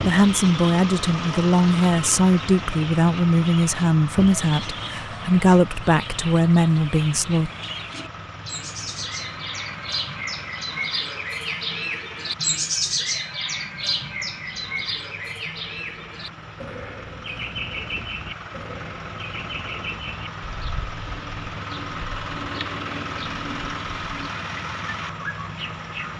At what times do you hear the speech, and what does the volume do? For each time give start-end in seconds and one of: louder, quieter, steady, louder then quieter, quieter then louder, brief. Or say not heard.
0.0-7.5 steady.